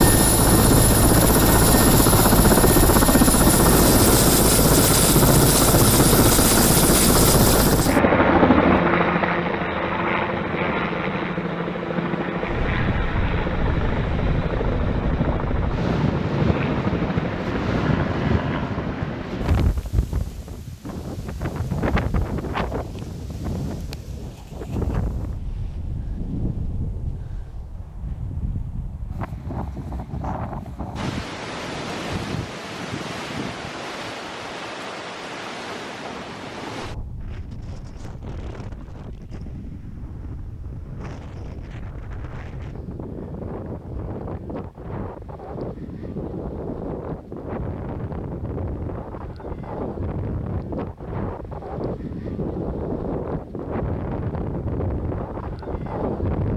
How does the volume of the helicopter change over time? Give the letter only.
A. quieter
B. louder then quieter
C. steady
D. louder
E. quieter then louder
A.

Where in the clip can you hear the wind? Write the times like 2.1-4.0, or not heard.
12.3-56.5.